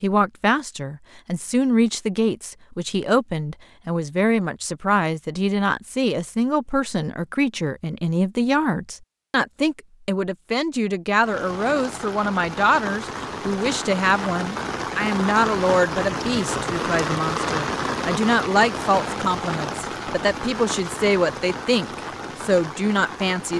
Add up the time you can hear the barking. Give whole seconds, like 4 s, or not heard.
not heard.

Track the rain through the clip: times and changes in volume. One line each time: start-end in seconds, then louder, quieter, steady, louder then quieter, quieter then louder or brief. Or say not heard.
11.2-23.5 louder then quieter.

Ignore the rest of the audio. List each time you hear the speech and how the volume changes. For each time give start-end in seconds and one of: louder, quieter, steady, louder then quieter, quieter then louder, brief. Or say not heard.
0.0-23.5 steady.